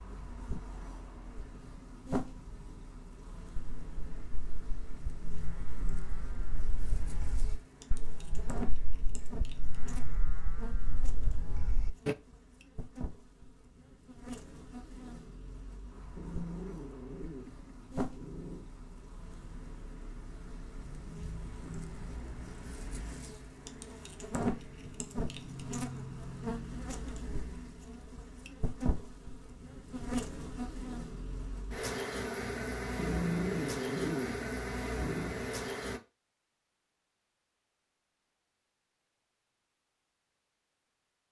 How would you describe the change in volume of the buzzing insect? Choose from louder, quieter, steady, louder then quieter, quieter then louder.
louder.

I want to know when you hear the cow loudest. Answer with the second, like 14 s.
12 s.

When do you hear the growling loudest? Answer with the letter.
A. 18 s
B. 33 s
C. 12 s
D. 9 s
B.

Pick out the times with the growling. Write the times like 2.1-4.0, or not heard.
16.1-18.6, 33.0-35.4.